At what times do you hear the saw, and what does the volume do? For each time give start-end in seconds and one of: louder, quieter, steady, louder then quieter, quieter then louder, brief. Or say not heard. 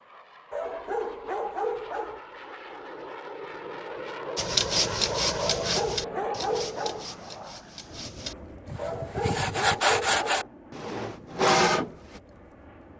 4.3-12.2 quieter then louder.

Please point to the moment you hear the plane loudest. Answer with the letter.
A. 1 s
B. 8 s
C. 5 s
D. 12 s
C.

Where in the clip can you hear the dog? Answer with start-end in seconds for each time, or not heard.
0.5-2.2, 5.3-7.0, 8.8-10.5.